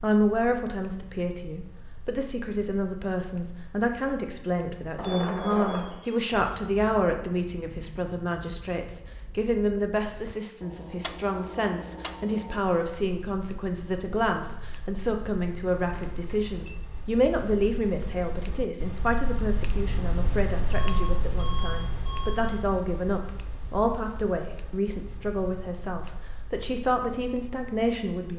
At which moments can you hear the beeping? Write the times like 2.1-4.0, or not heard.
5.0-6.5, 15.8-16.8, 20.7-22.4.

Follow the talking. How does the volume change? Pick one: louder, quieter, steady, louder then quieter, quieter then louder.
steady.